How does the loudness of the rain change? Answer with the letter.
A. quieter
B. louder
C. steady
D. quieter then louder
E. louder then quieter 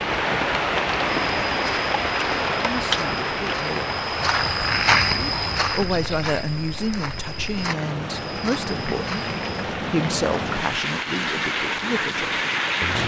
D.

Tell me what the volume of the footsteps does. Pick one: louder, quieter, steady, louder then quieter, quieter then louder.
louder then quieter.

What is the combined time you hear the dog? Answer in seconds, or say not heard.
not heard.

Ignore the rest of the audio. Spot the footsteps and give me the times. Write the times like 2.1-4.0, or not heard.
1.3-9.7.